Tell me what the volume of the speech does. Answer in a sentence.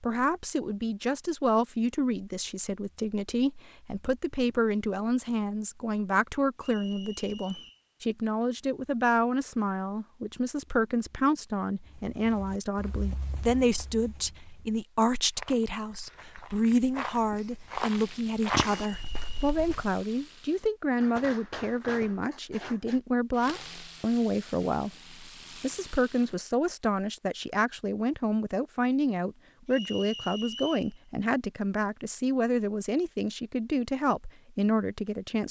The loudness of the speech stays about the same.